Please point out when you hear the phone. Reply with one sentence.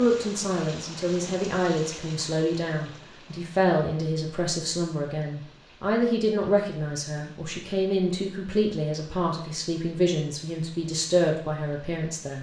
You can't hear the phone here.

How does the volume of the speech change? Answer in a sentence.
The loudness of the speech stays about the same.